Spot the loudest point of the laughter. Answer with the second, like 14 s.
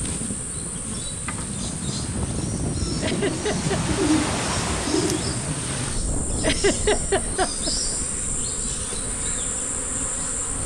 7 s.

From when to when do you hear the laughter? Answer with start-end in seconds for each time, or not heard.
3.0-3.9, 6.4-7.7.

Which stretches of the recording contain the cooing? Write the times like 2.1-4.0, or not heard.
2.8-5.3.